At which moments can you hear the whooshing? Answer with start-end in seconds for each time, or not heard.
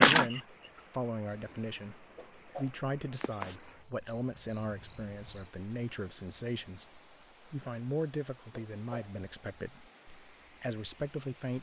2.1-2.8, 8.5-9.2.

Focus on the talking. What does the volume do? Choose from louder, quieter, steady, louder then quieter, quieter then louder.
steady.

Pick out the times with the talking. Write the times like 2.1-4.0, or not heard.
0.0-11.5.